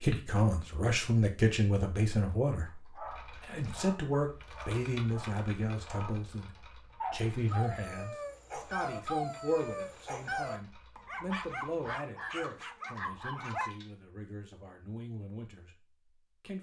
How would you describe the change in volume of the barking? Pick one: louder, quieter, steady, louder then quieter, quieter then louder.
louder.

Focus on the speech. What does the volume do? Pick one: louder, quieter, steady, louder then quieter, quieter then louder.
quieter.